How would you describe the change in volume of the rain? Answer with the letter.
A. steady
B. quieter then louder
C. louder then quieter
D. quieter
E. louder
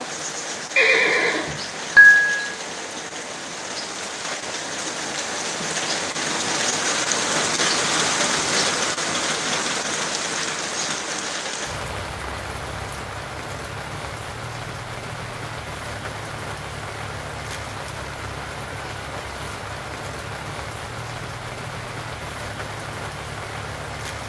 C.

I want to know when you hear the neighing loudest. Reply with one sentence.
The loudest moment of the neighing is at 2 seconds.